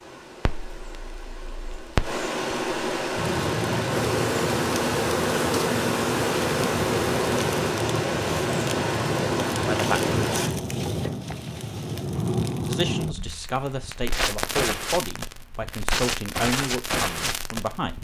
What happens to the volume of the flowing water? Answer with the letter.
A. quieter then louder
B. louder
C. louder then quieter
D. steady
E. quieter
B.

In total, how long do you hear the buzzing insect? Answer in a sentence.
You can hear the buzzing insect for 4 seconds altogether.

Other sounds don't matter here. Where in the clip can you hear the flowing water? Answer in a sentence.
You can hear the flowing water from 0.0 to 10.6 s.